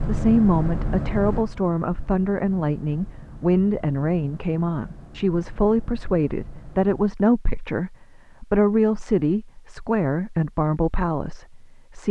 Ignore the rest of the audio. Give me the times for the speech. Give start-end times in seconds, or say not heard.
0.1-12.0.